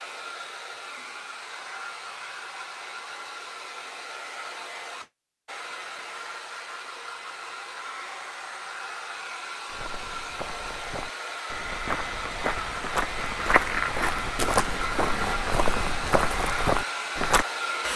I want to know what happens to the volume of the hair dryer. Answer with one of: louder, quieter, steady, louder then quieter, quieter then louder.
louder.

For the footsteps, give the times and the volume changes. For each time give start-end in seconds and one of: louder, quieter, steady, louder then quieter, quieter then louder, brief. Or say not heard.
9.7-17.4 louder.